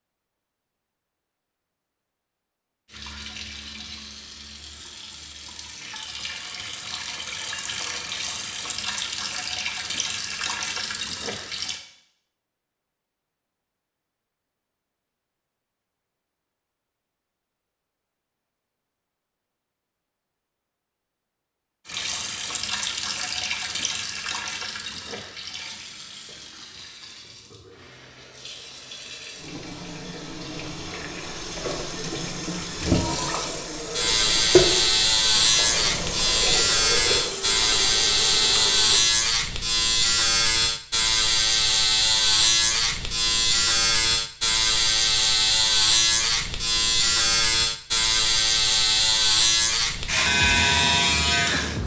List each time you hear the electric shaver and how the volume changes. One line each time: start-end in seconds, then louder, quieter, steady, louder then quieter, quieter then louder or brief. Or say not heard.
33.9-51.8 steady.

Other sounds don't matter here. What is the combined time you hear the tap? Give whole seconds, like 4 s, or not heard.
26 s.